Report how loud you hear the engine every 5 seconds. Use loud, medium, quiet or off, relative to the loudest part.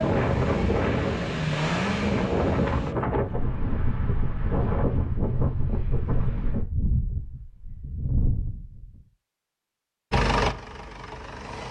loud, off, loud.